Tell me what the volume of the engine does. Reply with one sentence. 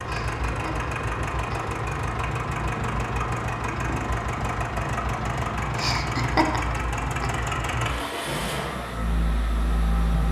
The loudness of the engine stays about the same.